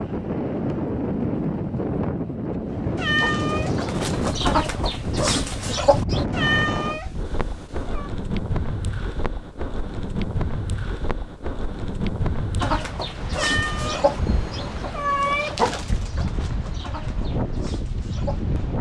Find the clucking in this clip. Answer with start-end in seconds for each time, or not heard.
2.7-6.2, 12.6-18.4.